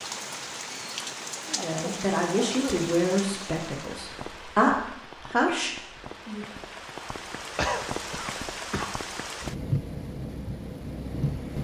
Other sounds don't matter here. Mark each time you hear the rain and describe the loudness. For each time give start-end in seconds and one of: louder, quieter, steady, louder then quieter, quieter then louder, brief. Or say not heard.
0.0-11.5 quieter then louder.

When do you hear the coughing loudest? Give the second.
8 s.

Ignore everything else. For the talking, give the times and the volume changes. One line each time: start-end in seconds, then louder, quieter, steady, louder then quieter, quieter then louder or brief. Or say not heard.
1.5-6.5 quieter then louder.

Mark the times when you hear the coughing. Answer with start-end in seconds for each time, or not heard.
1.6-2.8, 7.5-8.8.